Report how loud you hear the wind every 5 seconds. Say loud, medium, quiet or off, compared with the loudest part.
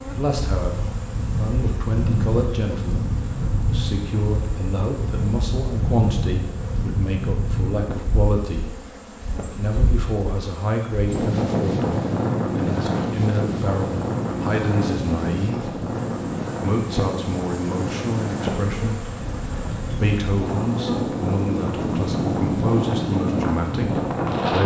medium, medium, loud, medium, loud.